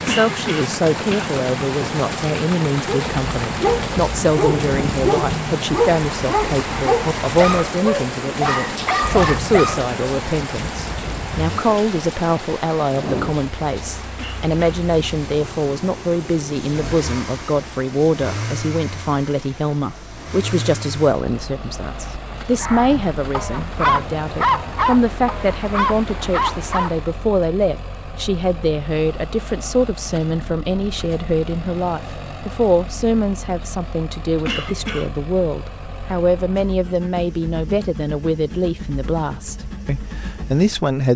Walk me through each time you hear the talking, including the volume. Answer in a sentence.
You can hear the talking from 0.0 to 41.1 s, at a steady volume.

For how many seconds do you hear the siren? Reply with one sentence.
The siren can't be heard in this clip.